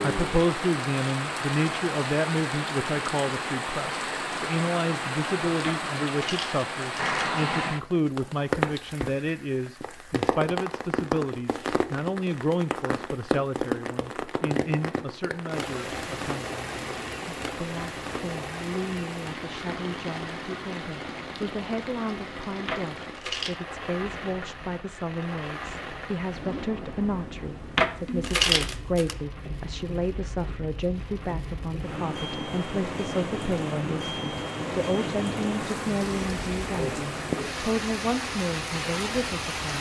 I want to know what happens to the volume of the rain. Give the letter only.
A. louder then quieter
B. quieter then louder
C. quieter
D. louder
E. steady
B.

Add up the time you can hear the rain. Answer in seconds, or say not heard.
40 s.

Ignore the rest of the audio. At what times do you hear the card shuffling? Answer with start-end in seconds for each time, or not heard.
5.6-7.3, 22.6-23.6, 27.8-29.1.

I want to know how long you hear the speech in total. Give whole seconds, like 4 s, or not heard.
40 s.